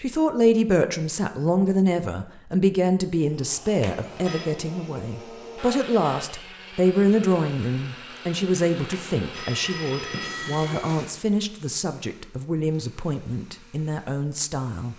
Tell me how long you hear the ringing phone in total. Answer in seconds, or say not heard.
3 s.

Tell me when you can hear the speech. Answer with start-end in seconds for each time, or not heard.
0.0-14.9.